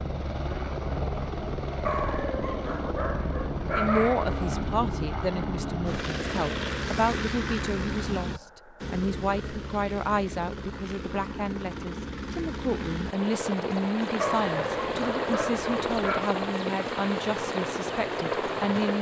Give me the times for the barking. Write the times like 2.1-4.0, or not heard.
1.9-4.4, 14.2-16.3.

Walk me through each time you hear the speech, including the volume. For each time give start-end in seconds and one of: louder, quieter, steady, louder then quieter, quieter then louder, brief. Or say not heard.
3.8-18.9 steady.